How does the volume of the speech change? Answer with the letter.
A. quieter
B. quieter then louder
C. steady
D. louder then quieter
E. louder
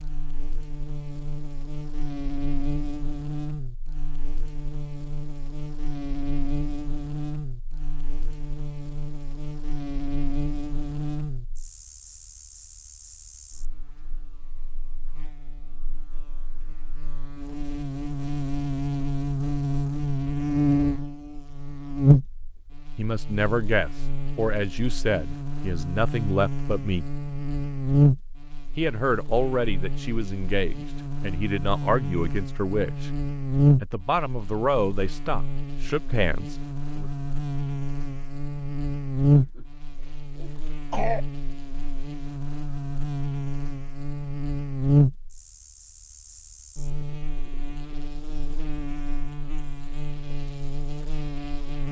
C.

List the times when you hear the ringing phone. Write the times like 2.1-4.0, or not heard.
not heard.